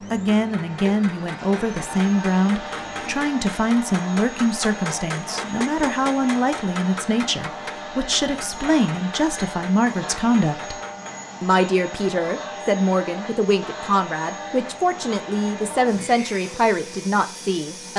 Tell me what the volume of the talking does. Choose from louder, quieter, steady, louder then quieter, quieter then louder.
steady.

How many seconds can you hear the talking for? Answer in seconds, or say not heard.
17 s.